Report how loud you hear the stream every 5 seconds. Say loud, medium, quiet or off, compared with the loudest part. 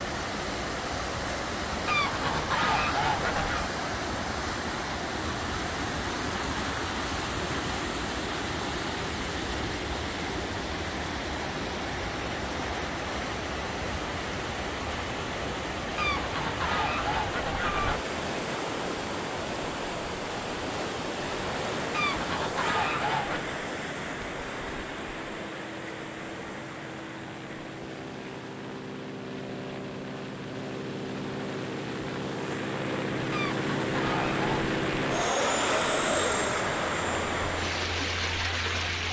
loud, loud, loud, loud, loud, medium, medium, loud.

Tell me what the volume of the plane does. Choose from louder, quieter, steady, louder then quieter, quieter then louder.
louder.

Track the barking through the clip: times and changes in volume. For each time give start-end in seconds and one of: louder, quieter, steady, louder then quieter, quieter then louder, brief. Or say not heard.
not heard.